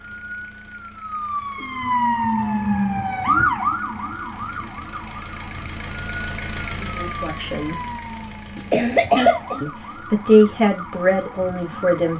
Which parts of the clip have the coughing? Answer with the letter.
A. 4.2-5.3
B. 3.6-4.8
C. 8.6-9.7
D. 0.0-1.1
C.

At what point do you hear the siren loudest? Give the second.
3 s.